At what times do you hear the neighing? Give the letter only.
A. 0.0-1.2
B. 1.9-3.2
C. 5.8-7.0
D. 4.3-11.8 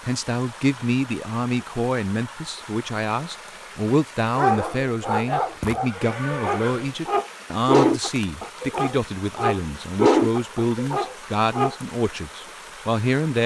C.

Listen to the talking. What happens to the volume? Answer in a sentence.
The loudness of the talking stays about the same.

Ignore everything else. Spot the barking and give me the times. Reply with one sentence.
You can hear the barking from 4.3 to 11.8 s.